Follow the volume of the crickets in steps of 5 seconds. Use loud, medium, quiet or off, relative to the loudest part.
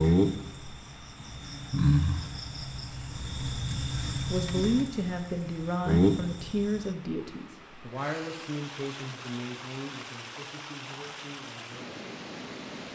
loud, loud, off.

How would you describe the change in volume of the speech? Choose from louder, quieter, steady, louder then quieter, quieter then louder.
quieter.